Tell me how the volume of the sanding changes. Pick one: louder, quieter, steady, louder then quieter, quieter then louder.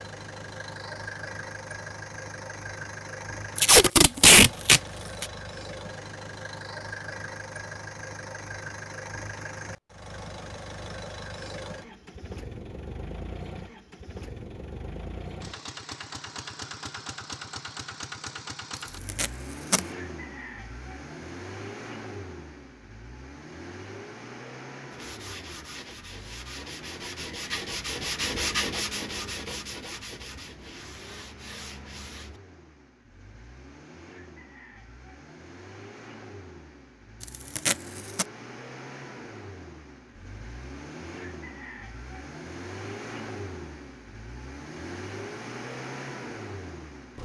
louder then quieter.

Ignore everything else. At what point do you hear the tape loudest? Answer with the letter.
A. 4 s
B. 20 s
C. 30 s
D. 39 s
A.